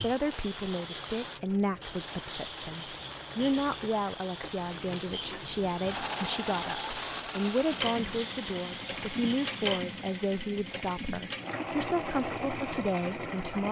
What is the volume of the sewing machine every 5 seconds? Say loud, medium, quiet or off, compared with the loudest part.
quiet, loud, loud.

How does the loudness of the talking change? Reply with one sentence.
The loudness of the talking stays about the same.